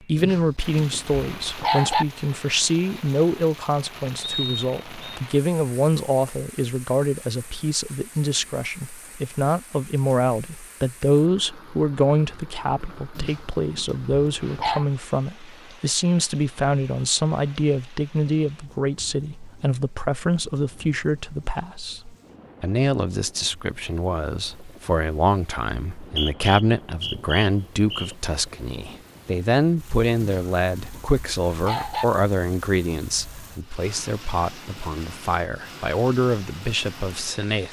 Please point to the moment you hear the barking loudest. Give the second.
2 s.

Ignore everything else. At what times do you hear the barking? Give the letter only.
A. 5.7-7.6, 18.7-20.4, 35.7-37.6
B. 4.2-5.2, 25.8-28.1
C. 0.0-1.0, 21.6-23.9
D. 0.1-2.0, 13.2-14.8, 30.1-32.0
D.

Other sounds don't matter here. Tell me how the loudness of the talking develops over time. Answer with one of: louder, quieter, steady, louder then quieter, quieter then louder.
steady.